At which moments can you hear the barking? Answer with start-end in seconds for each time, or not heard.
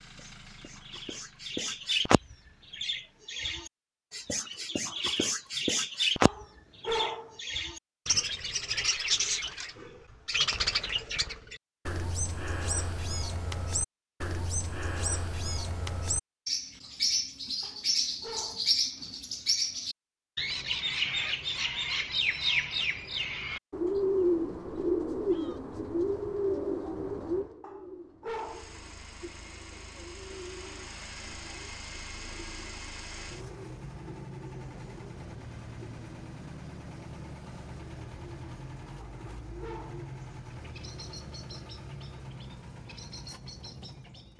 6.2-7.3, 17.6-18.8, 27.6-28.8, 39.0-40.1.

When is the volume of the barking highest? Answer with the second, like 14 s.
7 s.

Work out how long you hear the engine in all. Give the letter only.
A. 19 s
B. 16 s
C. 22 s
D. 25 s
A.